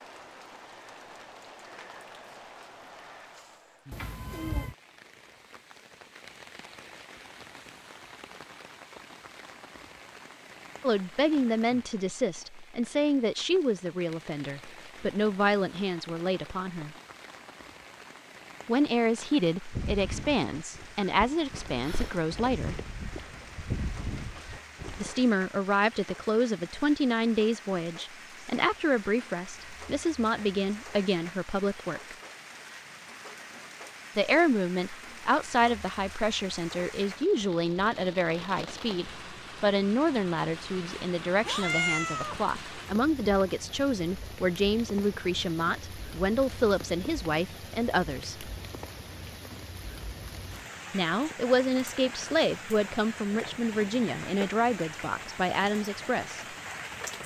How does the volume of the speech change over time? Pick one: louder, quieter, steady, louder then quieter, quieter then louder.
steady.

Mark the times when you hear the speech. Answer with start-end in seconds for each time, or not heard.
10.8-16.9, 18.6-22.9, 24.9-32.1, 34.1-48.5, 50.9-56.5.